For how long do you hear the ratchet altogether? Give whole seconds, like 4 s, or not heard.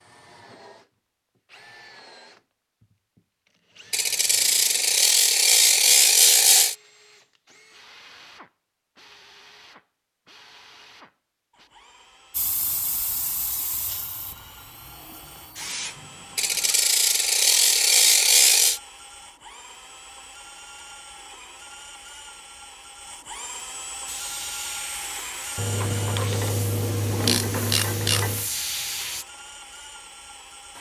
8 s.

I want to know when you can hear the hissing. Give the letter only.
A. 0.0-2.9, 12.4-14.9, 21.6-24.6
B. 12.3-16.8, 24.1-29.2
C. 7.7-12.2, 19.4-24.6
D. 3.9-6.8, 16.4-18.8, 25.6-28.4
B.